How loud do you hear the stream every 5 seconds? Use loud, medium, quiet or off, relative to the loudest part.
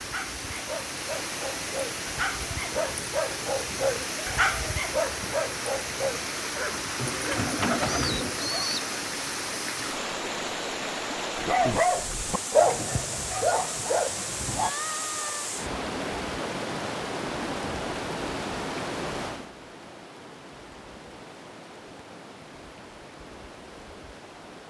loud, loud, loud, loud, quiet.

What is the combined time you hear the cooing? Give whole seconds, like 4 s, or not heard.
2 s.